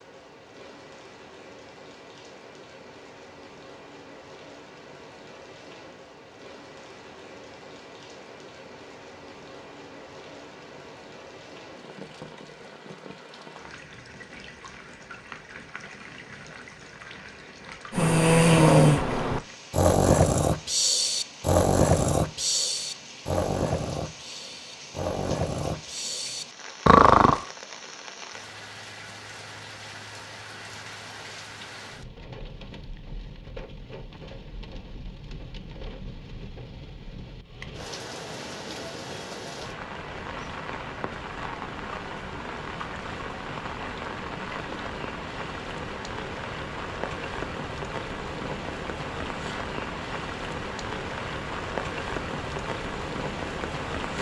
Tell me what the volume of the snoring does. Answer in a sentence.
The volume of the snoring goes down, then up.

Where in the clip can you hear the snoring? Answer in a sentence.
You can hear the snoring from 17.9 to 27.4 s.